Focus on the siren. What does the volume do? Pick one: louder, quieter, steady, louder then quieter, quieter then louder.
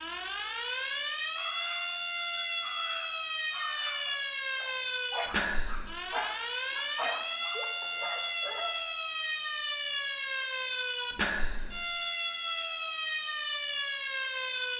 steady.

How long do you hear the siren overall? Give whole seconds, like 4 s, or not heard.
15 s.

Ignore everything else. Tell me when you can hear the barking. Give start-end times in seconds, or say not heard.
1.4-8.9.